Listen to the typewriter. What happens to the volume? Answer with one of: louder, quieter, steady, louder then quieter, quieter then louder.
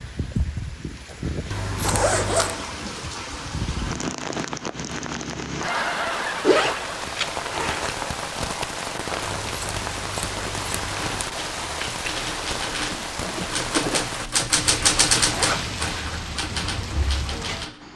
louder then quieter.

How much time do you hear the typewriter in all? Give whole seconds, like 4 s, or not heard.
7 s.